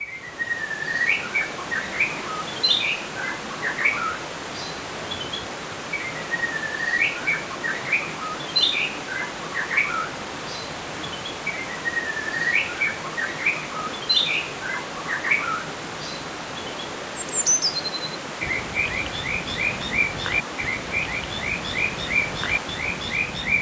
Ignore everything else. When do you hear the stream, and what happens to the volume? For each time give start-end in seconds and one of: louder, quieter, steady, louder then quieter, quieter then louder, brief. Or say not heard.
0.0-23.5 steady.